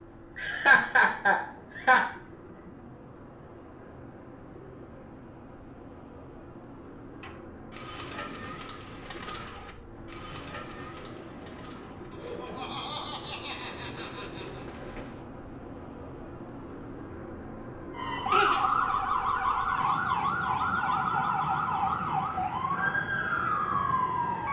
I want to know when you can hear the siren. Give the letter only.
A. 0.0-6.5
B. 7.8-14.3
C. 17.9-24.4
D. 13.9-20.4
C.